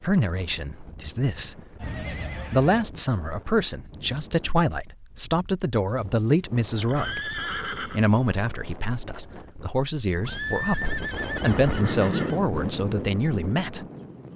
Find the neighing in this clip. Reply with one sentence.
The neighing can be heard from 1.8 to 2.9 s, from 6.7 to 8.0 s and from 10.2 to 12.4 s.